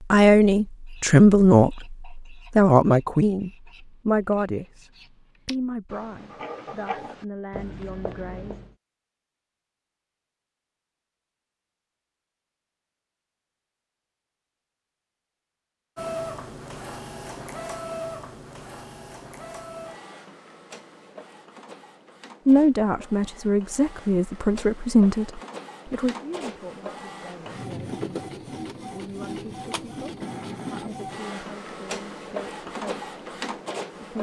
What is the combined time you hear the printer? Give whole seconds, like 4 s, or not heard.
18 s.